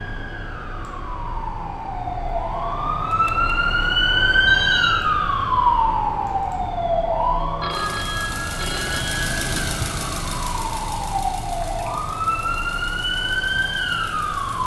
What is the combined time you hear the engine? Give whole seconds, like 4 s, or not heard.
9 s.